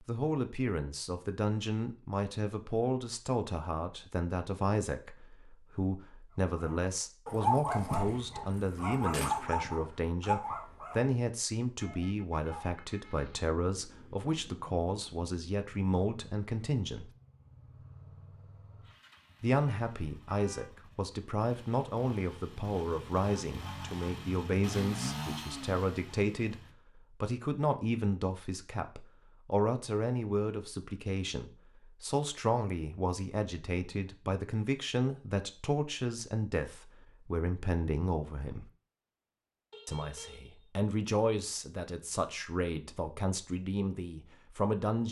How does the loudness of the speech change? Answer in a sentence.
The volume of the speech stays about the same.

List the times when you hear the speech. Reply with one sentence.
The speech can be heard from 0.0 to 17.1 s, from 19.4 to 38.7 s and from 39.9 to 45.0 s.